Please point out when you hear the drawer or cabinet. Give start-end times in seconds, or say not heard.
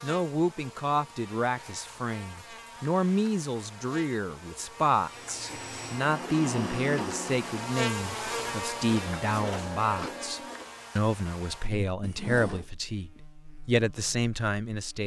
12.0-12.7.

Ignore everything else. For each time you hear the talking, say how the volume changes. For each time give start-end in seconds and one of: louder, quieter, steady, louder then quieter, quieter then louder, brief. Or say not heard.
0.0-15.0 steady.